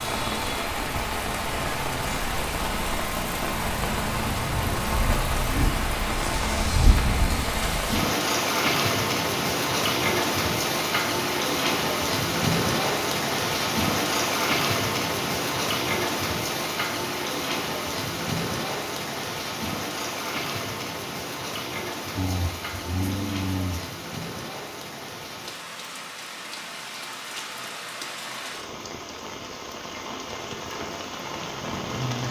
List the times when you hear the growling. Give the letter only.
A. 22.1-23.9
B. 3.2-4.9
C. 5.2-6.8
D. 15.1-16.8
A.